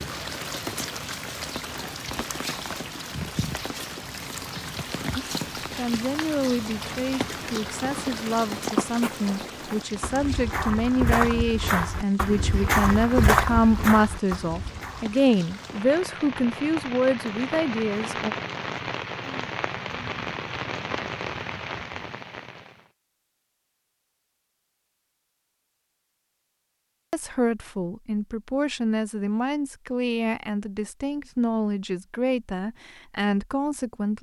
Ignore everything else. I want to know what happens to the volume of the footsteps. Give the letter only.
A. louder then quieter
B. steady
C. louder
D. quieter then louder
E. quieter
D.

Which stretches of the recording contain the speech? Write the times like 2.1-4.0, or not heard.
5.2-18.4, 27.1-34.1.